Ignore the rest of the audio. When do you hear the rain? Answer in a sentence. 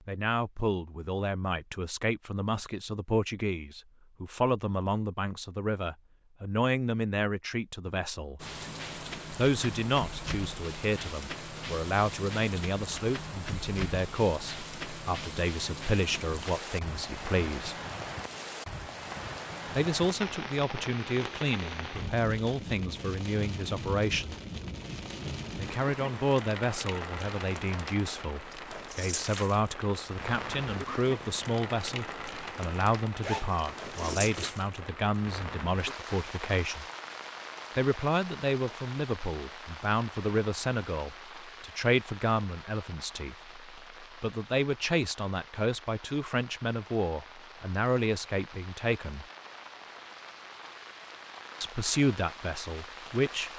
The rain can be heard from 8.3 to 53.5 s.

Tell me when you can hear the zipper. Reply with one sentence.
The zipper can be heard from 33.2 to 34.5 s.